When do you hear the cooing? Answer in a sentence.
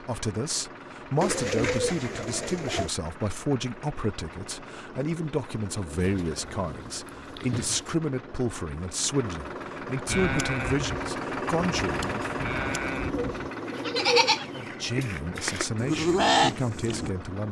The cooing can be heard from 1.2 to 2.9 s, from 6.0 to 8.0 s and from 13.1 to 14.7 s.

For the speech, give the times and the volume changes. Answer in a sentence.
The speech can be heard from 0.0 to 12.3 s, at a steady volume; and briefly from 14.6 to 17.4 s.